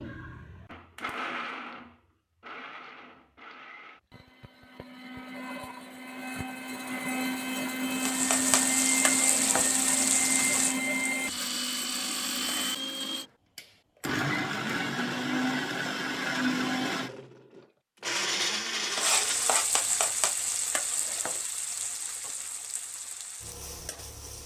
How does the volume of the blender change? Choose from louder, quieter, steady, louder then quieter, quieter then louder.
louder.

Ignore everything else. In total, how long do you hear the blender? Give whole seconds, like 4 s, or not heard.
20 s.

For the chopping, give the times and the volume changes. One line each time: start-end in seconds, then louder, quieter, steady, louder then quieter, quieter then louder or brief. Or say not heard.
not heard.